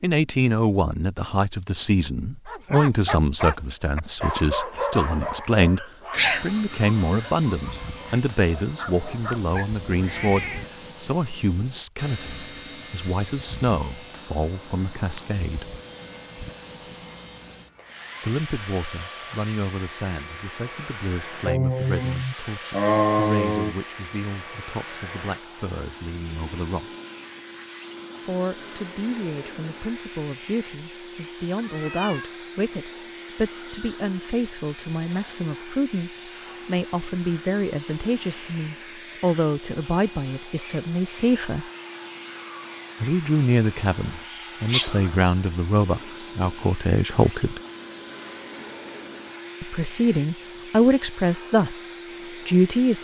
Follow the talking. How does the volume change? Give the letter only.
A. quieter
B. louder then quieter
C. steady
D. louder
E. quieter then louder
E.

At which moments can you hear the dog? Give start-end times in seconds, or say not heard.
2.5-9.8.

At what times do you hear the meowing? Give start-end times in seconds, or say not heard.
9.8-10.7, 31.6-32.4.